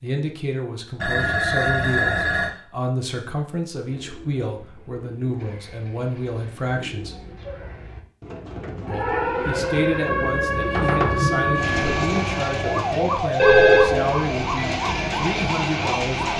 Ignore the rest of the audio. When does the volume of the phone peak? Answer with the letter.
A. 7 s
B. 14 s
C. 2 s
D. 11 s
B.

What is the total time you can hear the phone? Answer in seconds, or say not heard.
3 s.